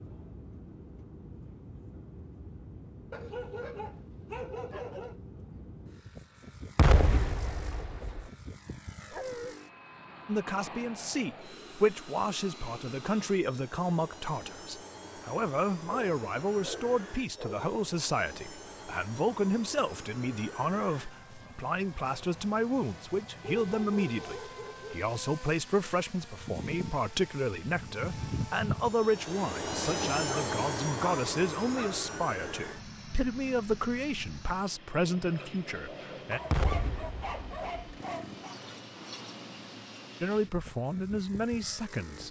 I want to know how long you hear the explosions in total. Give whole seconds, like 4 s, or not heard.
3 s.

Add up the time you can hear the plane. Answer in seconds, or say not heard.
42 s.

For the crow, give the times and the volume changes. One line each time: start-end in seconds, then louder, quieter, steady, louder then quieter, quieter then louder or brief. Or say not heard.
not heard.